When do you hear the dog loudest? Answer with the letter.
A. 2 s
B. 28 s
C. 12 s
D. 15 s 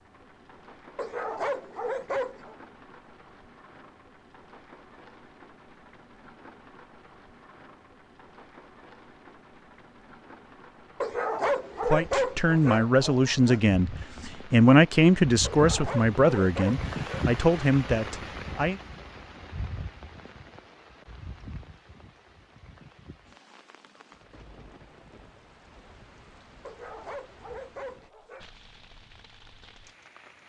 C.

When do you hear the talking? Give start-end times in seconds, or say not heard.
11.8-18.8.